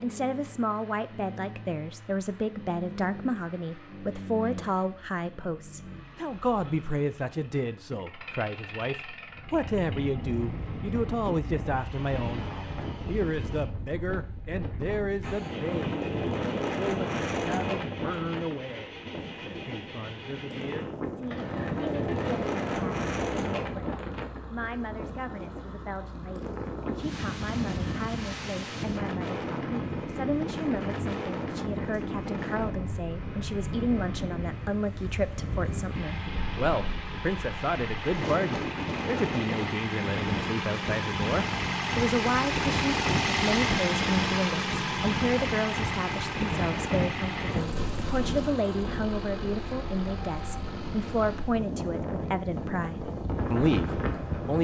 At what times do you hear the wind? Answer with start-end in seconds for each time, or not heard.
9.3-54.5.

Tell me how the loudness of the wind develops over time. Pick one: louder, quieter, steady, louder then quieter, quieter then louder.
steady.